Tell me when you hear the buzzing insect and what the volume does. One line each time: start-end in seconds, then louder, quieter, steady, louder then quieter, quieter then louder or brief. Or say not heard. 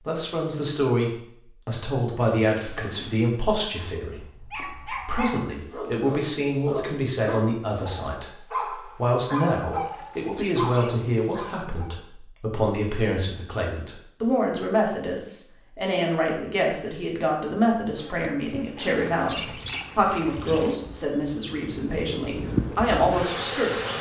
17.9-23.9 quieter then louder.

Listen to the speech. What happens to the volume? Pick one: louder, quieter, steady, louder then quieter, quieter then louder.
steady.